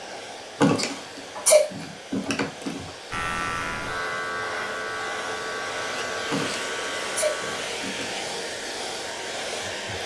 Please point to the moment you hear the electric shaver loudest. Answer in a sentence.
The volume of the electric shaver peaks at 4 seconds.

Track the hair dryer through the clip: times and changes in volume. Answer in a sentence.
You can hear the hair dryer from 0.0 to 10.0 s, getting louder.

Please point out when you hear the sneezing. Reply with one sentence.
You can hear the sneezing from 0.6 to 2.9 s and from 6.3 to 8.1 s.